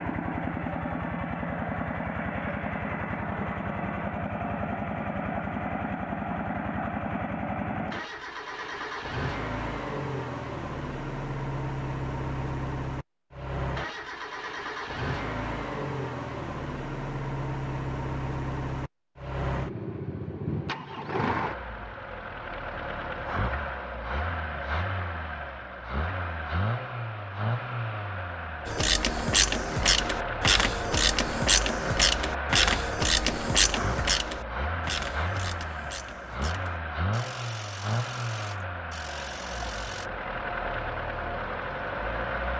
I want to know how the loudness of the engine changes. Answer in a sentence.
The volume of the engine stays about the same.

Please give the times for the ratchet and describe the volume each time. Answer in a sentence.
You can hear the ratchet from 28.6 to 40.1 s, getting quieter.